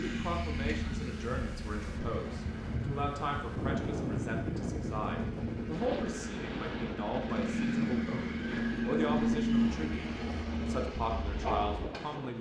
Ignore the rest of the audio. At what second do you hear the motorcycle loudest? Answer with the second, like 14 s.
9 s.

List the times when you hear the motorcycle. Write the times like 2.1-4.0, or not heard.
0.0-12.3.